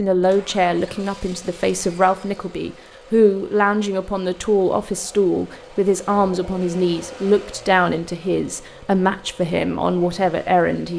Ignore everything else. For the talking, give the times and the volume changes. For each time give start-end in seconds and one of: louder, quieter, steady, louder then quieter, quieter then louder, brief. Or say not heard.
0.0-10.9 steady.